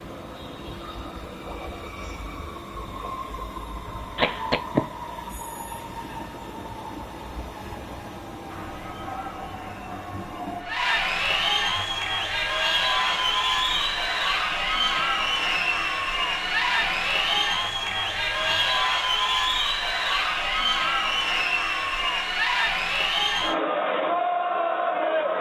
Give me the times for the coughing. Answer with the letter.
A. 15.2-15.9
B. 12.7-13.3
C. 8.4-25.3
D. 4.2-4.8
D.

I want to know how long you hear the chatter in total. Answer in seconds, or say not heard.
17 s.